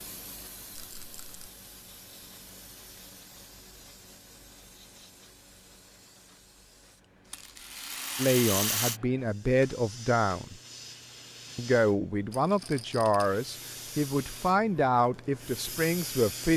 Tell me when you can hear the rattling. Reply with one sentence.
You can hear the rattling from 0.8 to 1.5 s, from 7.3 to 9.0 s and from 12.3 to 13.3 s.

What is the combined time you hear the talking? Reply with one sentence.
You can hear the talking for 7 seconds altogether.